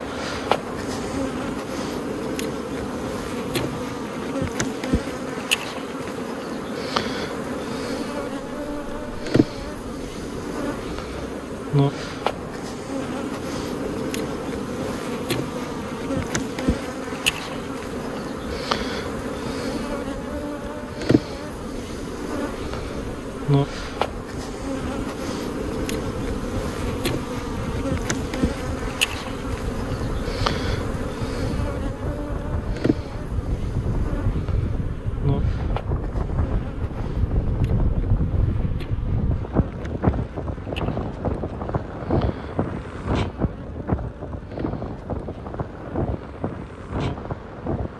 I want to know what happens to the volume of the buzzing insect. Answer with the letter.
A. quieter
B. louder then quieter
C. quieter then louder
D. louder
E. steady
A.